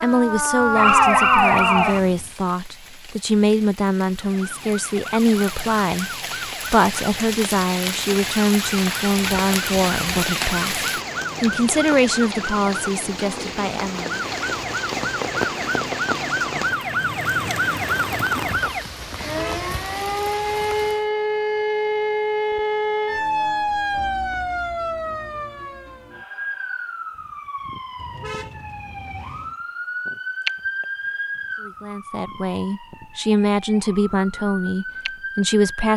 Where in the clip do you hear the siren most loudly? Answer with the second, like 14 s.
1 s.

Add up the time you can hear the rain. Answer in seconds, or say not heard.
21 s.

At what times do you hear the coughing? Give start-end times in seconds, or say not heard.
not heard.